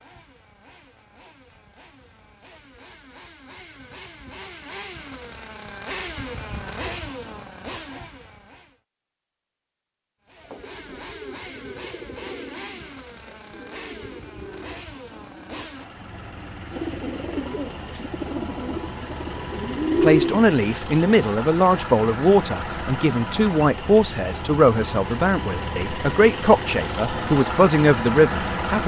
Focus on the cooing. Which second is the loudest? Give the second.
20 s.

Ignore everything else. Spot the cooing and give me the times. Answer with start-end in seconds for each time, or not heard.
10.4-20.5.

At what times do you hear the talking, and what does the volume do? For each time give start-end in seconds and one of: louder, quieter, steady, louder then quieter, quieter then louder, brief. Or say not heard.
20.0-28.8 steady.